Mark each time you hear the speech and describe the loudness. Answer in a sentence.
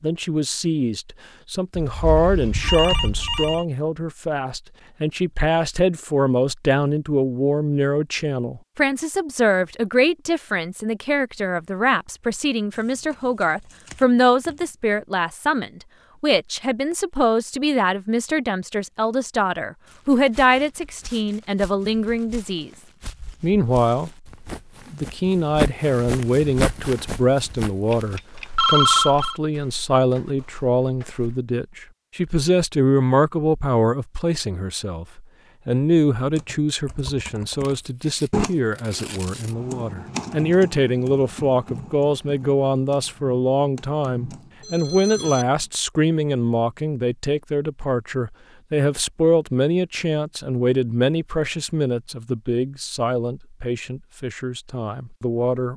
The speech can be heard from 0.0 to 22.7 s, at a steady volume; briefly from 23.4 to 24.3 s; and from 24.9 to 55.7 s, at a steady volume.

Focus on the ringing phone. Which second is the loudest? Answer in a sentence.
The volume of the ringing phone peaks at 29 seconds.